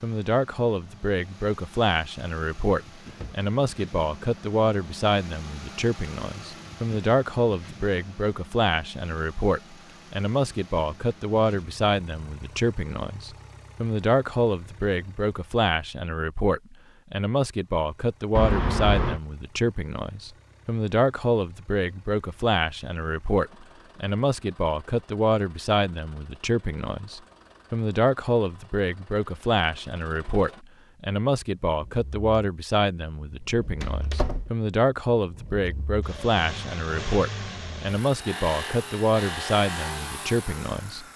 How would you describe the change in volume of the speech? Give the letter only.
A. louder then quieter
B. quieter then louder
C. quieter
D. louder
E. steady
E.